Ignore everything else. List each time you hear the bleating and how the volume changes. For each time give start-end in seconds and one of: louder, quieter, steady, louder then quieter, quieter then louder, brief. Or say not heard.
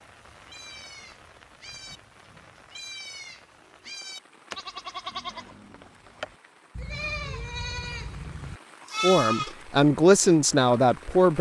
0.3-9.6 louder.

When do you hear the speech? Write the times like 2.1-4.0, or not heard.
9.0-11.3.